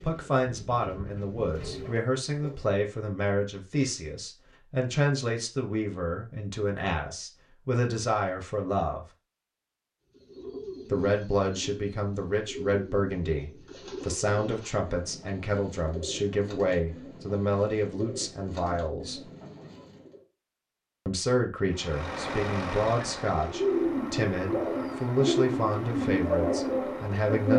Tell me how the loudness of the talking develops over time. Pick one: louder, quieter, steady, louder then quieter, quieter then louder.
steady.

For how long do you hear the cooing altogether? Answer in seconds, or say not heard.
17 s.